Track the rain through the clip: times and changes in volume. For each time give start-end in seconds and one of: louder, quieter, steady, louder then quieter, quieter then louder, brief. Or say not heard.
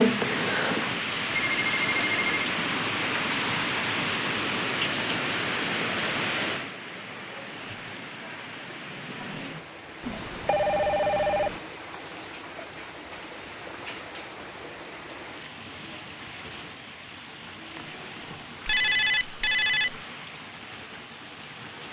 0.0-21.8 quieter.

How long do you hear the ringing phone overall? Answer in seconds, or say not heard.
4 s.